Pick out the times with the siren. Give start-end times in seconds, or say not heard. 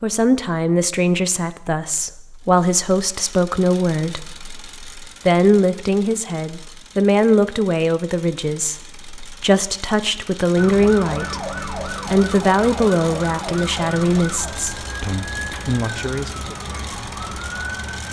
10.6-18.0.